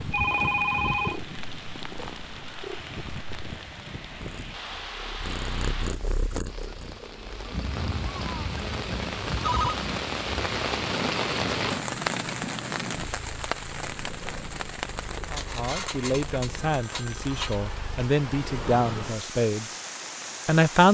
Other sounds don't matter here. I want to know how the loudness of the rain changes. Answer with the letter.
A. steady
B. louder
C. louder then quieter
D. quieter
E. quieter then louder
C.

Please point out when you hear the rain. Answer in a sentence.
You can hear the rain from 0.0 to 20.8 s.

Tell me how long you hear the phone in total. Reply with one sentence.
You can hear the phone for 5 seconds altogether.